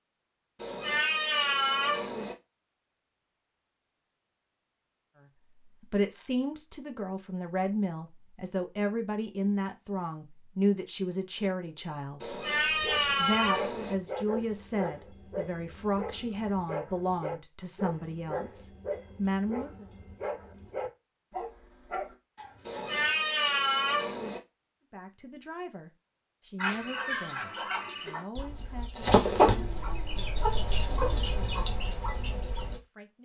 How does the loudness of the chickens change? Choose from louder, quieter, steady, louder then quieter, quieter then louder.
louder then quieter.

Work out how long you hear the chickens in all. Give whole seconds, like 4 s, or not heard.
6 s.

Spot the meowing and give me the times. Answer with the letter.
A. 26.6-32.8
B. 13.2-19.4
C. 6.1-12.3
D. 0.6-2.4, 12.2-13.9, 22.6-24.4
D.